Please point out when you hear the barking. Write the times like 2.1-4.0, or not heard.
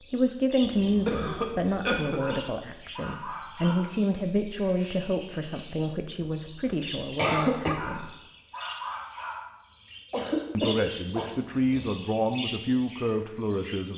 2.1-4.0, 7.7-9.4.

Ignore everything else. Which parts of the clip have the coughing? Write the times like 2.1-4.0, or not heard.
0.6-2.2, 6.2-7.8, 10.1-11.3.